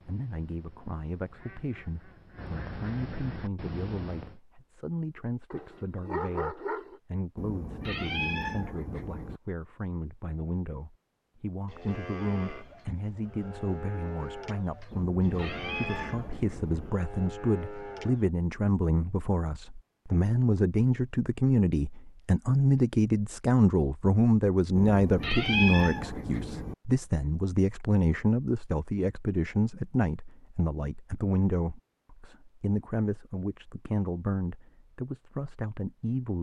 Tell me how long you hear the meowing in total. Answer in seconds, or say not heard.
6 s.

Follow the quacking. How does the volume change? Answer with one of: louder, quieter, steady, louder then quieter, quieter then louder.
louder.